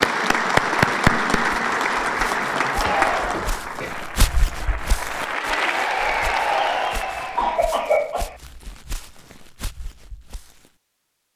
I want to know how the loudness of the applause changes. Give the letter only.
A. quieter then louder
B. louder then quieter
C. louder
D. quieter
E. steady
A.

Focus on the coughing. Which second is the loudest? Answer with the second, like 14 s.
8 s.